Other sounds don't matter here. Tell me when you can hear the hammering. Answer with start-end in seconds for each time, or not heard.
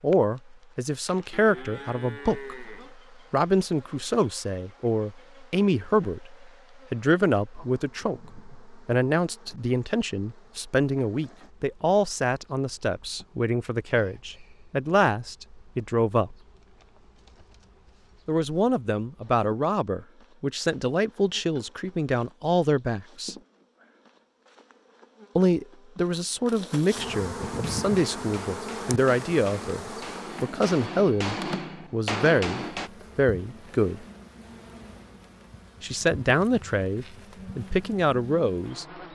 27.4-32.9.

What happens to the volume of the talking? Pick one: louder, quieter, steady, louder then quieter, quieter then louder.
steady.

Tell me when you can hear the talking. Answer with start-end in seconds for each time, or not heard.
0.0-16.4, 18.2-23.4, 25.4-34.0, 35.8-38.9.